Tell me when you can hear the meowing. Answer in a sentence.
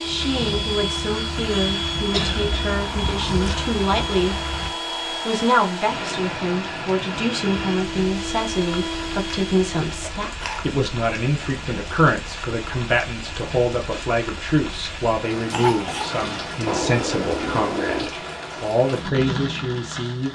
You can hear the meowing from 2.0 to 3.8 s and from 16.6 to 18.1 s.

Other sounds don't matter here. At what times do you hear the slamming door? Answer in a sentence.
The slamming door can't be heard in this clip.